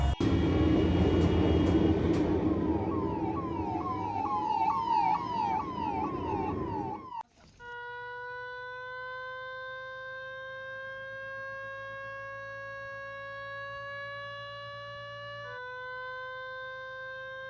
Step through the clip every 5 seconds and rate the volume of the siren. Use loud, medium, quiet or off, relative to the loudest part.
loud, loud, medium, medium.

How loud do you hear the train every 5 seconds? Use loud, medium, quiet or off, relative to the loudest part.
loud, medium, off, off.